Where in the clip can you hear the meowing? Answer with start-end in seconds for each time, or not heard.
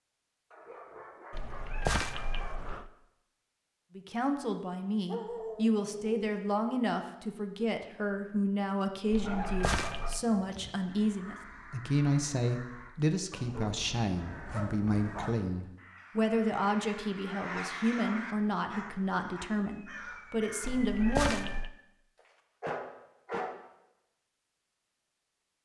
1.3-2.9, 9.1-10.2, 20.6-21.7.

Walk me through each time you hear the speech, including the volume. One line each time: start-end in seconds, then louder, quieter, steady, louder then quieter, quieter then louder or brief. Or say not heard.
4.0-21.5 steady.